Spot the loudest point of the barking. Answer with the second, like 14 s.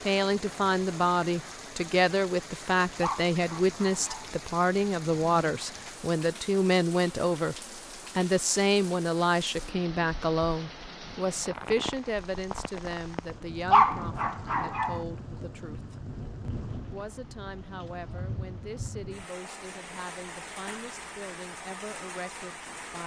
14 s.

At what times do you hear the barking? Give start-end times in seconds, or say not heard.
3.0-4.3, 13.7-15.0.